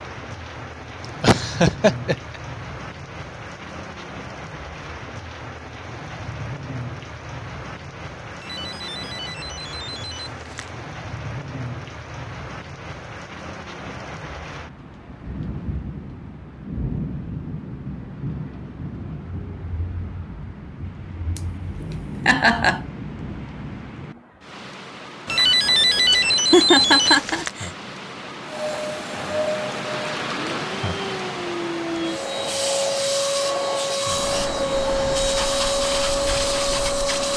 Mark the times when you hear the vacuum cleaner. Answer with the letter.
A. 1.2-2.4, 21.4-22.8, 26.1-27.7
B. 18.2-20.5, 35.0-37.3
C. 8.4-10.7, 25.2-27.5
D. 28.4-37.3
D.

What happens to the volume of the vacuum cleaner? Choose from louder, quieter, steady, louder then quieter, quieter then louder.
louder.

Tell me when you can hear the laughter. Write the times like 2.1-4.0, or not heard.
1.2-2.4, 21.4-22.8, 26.1-27.7.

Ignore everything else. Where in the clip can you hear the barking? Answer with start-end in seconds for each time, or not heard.
not heard.